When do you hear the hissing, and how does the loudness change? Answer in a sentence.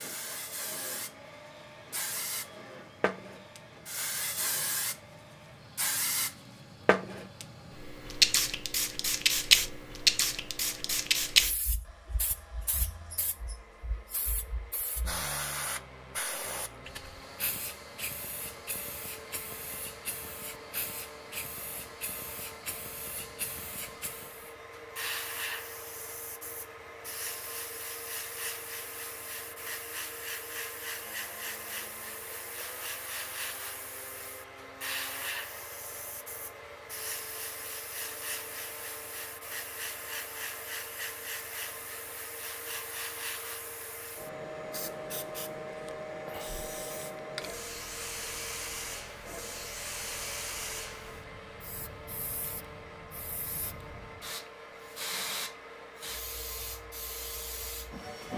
The hissing can be heard from 0.0 to 58.3 s, getting quieter.